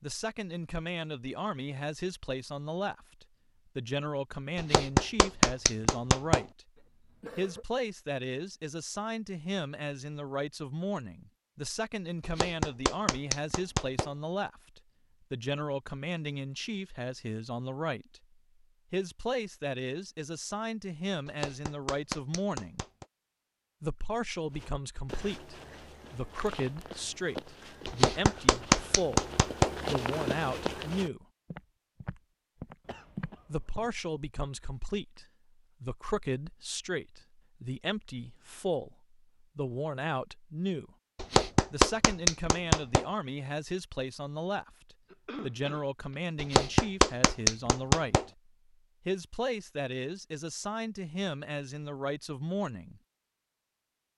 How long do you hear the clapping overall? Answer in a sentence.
You can hear the clapping for 11 seconds altogether.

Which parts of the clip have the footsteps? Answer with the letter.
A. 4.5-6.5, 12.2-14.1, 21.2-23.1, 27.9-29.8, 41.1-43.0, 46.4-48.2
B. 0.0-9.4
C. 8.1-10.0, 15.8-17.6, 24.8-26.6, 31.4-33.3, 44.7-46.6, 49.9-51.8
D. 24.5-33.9
D.